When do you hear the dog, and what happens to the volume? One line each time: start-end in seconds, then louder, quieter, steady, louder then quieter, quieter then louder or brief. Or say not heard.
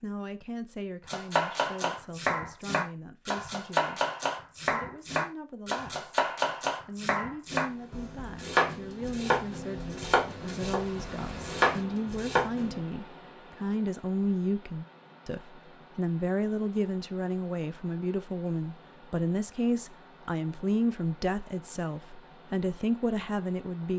not heard.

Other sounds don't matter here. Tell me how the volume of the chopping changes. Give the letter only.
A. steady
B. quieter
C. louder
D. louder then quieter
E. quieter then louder
A.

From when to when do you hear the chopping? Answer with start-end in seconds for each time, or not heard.
1.1-12.8.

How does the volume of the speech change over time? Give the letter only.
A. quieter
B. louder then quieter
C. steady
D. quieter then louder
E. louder
E.